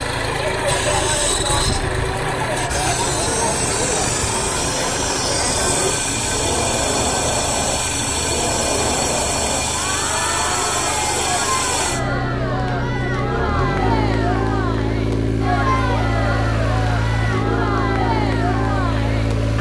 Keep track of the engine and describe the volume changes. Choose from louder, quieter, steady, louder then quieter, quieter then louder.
steady.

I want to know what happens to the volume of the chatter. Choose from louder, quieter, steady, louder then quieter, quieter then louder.
steady.